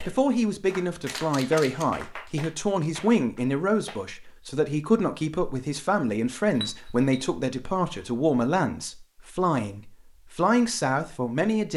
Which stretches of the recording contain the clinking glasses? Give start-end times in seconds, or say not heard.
6.5-7.2.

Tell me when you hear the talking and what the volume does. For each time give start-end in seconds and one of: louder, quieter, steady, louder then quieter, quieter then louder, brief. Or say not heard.
0.1-11.7 steady.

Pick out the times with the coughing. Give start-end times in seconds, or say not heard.
not heard.